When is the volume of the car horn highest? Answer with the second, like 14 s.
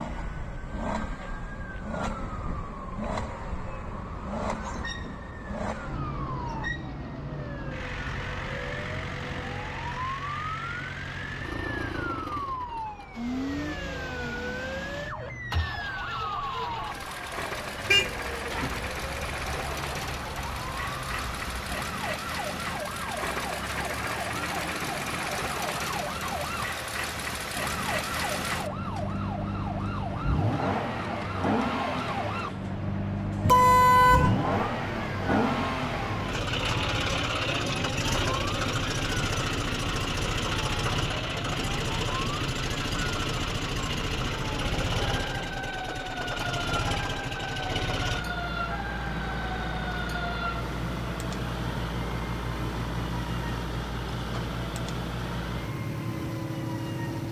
34 s.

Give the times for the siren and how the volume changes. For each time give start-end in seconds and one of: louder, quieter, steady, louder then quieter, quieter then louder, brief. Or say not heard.
0.0-57.2 steady.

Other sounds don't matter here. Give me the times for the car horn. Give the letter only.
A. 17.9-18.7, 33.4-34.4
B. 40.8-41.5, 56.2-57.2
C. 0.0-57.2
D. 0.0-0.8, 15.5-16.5
A.